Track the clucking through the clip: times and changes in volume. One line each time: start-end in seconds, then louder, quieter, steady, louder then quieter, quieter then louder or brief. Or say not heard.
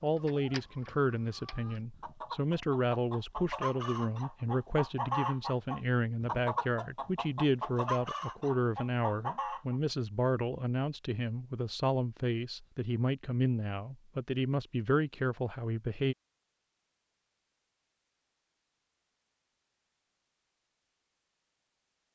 0.0-9.8 louder.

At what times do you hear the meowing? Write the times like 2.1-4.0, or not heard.
not heard.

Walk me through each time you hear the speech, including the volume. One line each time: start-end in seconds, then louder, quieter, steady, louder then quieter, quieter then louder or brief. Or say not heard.
0.0-16.1 steady.